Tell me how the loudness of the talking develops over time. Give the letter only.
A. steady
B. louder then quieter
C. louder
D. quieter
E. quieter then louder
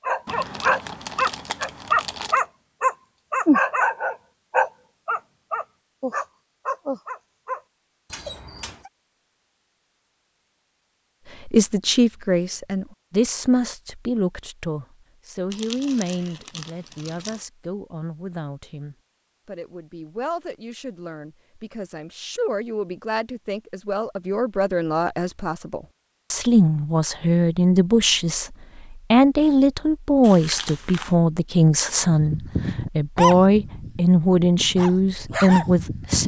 E.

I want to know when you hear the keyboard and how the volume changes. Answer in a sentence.
You can't hear the keyboard here.